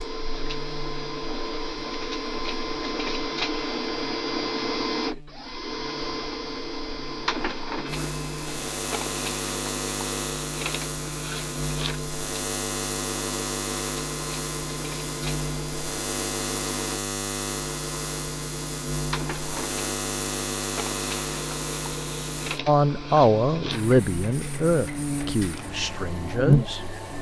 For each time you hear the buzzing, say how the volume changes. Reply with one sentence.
You can hear the buzzing from 0.0 to 27.1 s, getting louder.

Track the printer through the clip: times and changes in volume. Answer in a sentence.
You can hear the printer from 0.0 to 27.1 s, getting quieter.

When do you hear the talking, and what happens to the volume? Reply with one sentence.
The talking can be heard from 22.6 to 26.8 s, getting quieter.